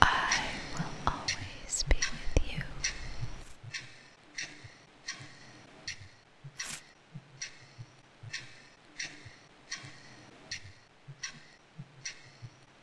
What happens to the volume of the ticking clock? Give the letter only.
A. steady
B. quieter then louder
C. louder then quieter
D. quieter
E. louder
D.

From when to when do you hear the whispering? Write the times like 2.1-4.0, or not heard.
0.0-3.3.